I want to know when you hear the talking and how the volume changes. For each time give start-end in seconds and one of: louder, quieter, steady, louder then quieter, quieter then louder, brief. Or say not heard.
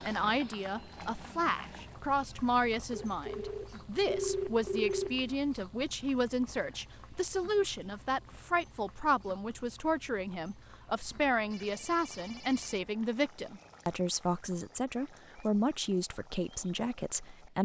0.0-17.6 steady.